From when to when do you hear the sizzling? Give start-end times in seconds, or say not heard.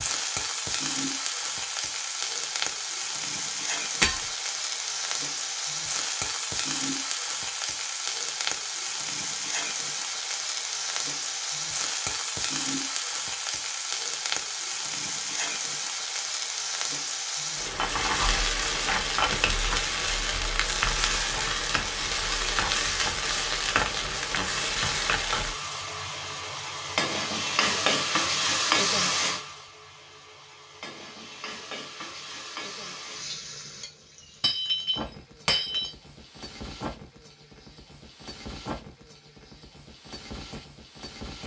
0.0-41.4.